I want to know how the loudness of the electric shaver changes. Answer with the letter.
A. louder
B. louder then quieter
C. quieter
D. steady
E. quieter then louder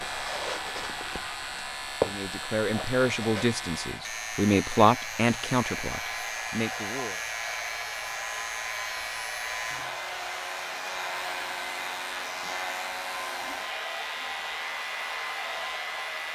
D.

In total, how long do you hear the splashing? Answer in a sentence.
You can't hear the splashing here.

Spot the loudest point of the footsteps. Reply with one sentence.
The volume of the footsteps peaks at 2 seconds.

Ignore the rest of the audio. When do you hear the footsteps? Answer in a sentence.
You can hear the footsteps from 0.0 to 3.5 s.